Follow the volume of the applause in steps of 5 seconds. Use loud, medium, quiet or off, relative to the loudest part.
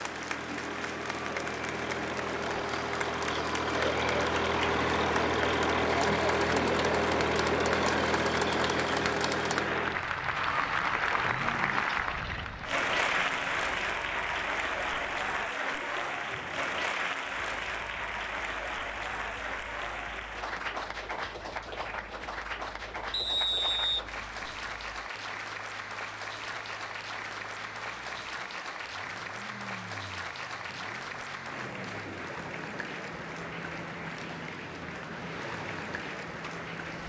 medium, loud, loud, loud, medium, medium, medium, medium.